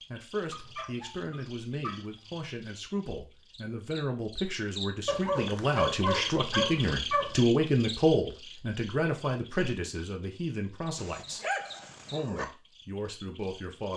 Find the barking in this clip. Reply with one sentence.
The barking can be heard from 0.5 to 2.5 s, from 5.0 to 7.4 s and from 10.9 to 12.4 s.